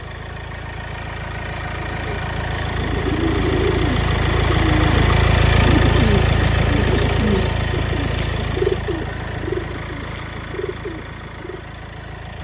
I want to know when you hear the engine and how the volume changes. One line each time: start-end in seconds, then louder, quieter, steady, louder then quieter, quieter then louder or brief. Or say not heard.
0.0-12.4 louder then quieter.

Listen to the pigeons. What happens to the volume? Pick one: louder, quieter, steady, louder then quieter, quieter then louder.
quieter.